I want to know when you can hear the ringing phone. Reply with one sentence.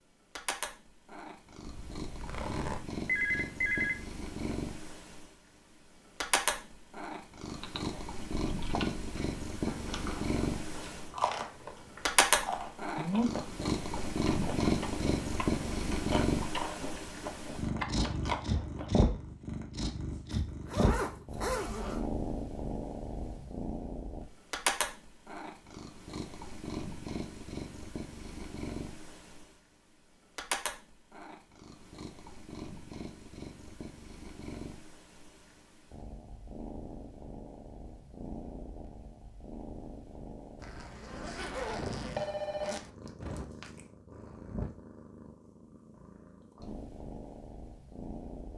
You can hear the ringing phone from 3.0 to 4.5 s and from 42.1 to 42.8 s.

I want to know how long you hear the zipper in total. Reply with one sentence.
The zipper can be heard for 5 seconds in total.